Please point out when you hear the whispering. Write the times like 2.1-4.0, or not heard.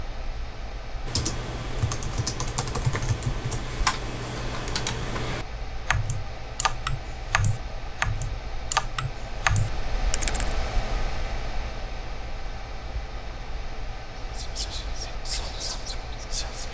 14.2-16.6.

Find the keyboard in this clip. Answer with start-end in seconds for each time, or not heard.
1.1-10.6.